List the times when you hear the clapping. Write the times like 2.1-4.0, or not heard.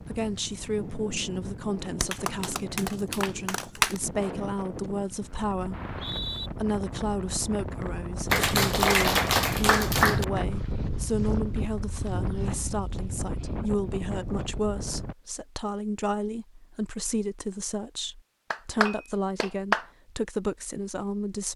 2.0-4.0, 8.3-10.2, 18.5-19.9.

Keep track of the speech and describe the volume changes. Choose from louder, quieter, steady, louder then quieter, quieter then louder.
steady.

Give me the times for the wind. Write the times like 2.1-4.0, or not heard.
0.0-15.2.